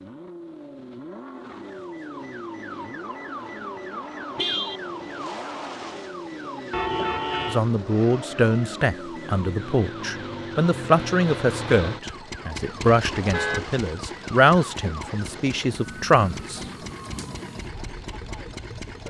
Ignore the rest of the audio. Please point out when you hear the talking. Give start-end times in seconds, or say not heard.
7.5-16.6.